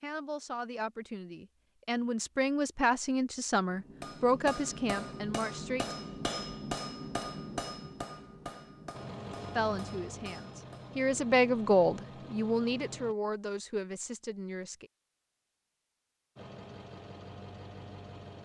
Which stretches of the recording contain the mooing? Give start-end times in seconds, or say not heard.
not heard.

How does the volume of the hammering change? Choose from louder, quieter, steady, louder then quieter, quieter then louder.
quieter.